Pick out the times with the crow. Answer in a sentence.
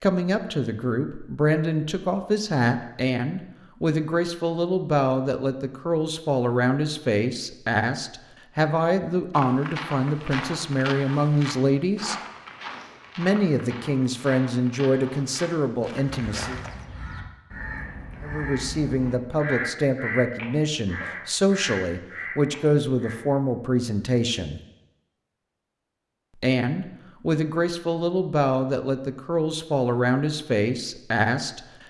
You can hear the crow from 16.2 to 23.1 s.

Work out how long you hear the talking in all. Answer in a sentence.
You can hear the talking for 27 seconds altogether.